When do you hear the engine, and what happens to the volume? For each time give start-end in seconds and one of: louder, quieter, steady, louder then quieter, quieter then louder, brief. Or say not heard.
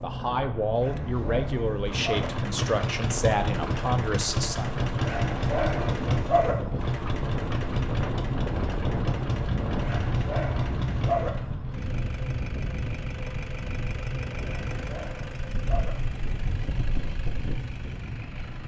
0.0-18.6 quieter.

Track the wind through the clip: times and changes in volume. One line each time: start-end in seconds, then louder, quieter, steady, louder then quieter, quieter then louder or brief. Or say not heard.
0.0-18.6 louder then quieter.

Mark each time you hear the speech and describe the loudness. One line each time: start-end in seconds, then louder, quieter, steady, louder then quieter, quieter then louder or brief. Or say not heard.
0.0-4.7 steady.